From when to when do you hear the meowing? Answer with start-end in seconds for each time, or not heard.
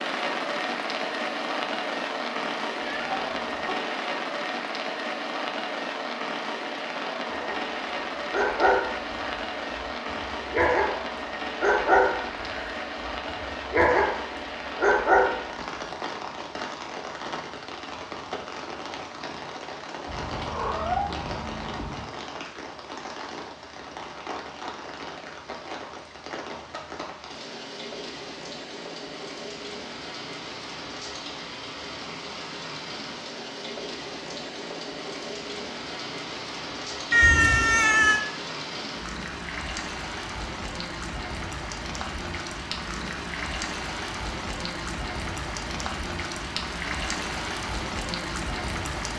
2.9-3.7, 20.1-22.1, 37.1-38.2.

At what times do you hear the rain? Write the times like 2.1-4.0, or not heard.
0.0-49.1.